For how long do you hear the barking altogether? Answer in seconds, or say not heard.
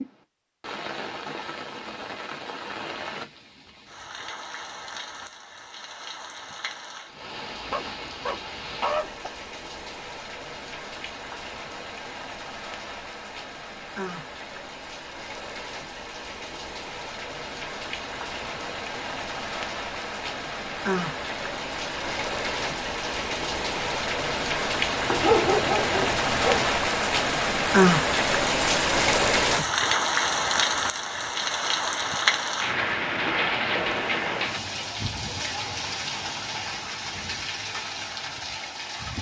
3 s.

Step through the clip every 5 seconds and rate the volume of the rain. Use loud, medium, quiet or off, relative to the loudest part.
quiet, quiet, quiet, quiet, medium, loud, loud, medium.